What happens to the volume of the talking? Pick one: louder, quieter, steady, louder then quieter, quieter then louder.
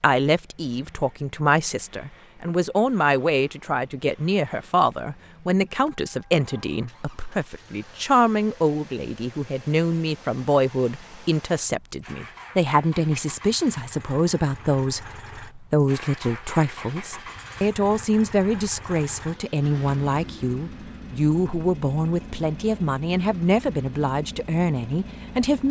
steady.